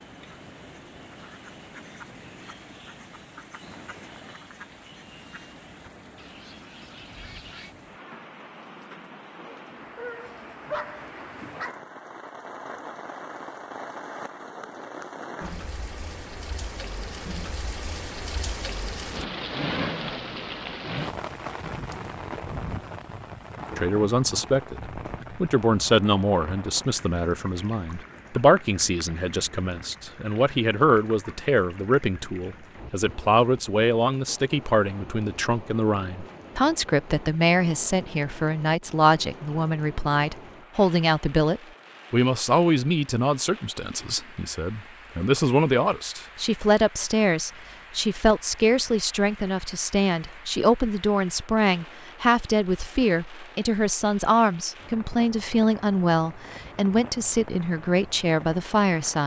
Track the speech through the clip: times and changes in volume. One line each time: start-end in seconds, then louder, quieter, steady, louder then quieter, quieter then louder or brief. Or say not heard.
23.8-59.2 steady.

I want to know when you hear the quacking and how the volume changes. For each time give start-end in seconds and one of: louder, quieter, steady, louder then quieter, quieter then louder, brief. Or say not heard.
0.0-7.8 steady.